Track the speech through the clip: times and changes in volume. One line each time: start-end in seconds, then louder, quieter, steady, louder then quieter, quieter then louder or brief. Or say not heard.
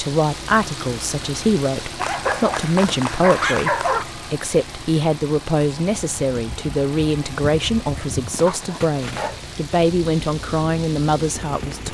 0.0-11.8 steady.